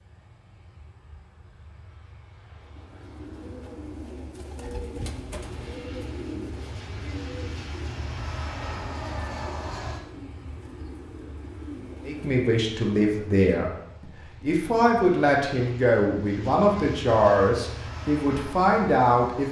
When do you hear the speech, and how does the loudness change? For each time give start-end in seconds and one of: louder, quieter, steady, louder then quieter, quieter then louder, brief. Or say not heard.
12.1-19.4 steady.